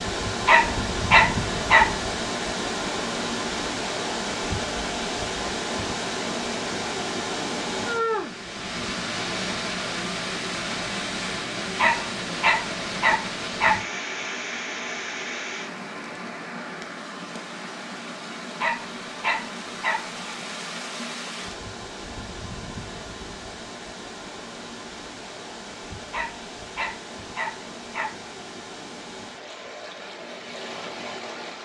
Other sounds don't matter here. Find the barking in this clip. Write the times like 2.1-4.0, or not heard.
0.5-1.9, 11.8-13.8, 18.6-20.1, 26.1-28.1.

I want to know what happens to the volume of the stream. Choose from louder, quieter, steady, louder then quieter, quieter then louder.
quieter.